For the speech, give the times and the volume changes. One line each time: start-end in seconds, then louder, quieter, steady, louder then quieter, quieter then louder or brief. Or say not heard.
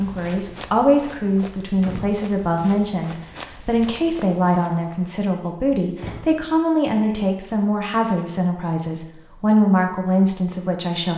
0.0-11.1 steady.